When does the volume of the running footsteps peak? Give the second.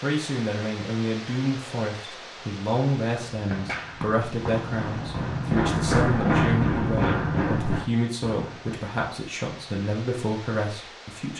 6 s.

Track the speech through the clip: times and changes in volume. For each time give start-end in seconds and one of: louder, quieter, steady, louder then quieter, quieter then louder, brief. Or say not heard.
0.0-11.3 steady.